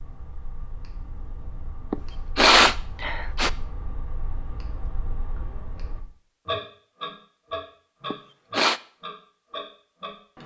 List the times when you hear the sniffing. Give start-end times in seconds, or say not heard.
1.9-3.5, 8.1-8.8.